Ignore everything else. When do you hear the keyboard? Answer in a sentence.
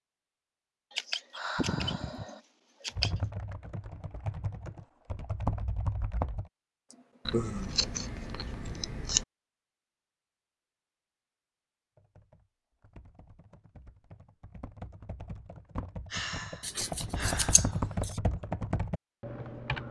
You can hear the keyboard from 3.0 to 6.5 s and from 11.9 to 19.8 s.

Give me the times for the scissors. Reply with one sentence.
You can hear the scissors from 0.9 to 3.2 s, from 7.2 to 9.2 s and from 16.6 to 18.2 s.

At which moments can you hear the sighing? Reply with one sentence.
The sighing can be heard from 1.4 to 2.4 s, from 6.9 to 7.7 s and from 16.1 to 17.9 s.